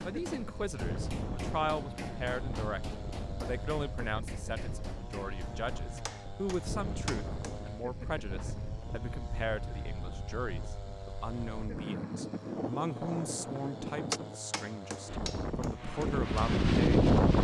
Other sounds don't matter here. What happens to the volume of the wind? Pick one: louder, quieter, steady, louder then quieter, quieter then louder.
louder.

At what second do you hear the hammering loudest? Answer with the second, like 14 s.
14 s.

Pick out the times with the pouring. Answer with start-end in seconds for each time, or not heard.
not heard.